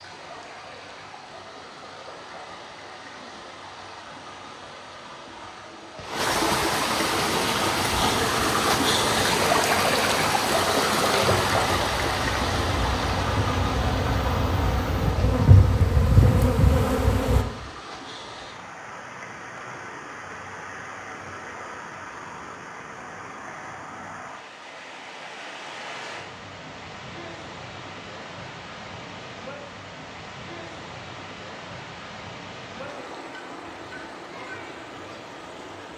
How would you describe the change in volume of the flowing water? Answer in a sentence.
The volume of the flowing water goes up, then down.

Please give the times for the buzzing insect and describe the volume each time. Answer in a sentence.
You can hear the buzzing insect from 7.0 to 17.4 s, getting louder.